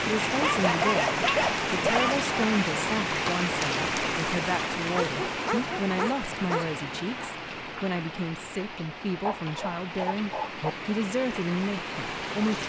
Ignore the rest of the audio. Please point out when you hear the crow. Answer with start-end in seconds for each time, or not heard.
not heard.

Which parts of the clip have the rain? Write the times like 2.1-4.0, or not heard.
0.0-12.6.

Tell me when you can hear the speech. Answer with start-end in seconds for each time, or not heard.
0.0-12.6.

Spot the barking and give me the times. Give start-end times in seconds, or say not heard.
0.4-2.2, 4.9-6.7, 9.2-10.7.